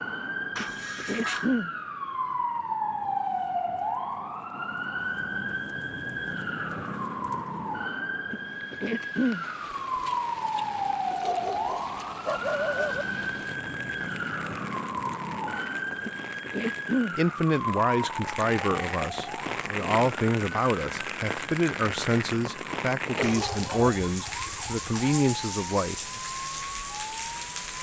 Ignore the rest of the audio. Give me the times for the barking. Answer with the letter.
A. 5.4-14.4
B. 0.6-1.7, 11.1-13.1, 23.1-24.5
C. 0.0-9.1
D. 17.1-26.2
B.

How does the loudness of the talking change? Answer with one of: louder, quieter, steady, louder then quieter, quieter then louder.
steady.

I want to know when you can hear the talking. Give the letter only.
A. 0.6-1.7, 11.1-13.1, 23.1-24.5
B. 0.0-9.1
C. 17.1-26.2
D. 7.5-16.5
C.